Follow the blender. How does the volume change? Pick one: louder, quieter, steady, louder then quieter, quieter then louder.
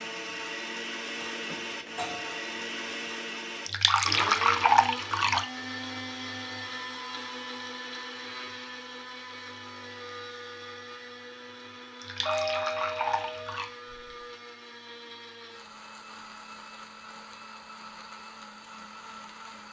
quieter.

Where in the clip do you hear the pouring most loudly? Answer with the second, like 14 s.
5 s.